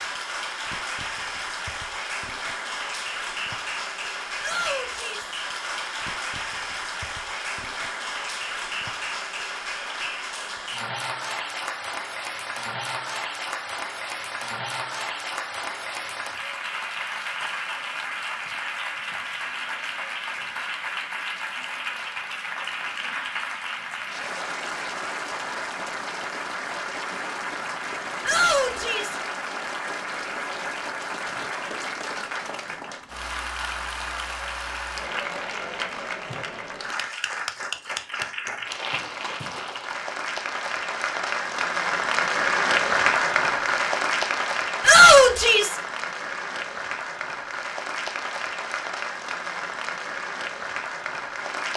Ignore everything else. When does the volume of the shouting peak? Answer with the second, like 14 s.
45 s.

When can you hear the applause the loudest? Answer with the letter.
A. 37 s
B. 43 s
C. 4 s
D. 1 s
B.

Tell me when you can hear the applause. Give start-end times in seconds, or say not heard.
0.0-51.7.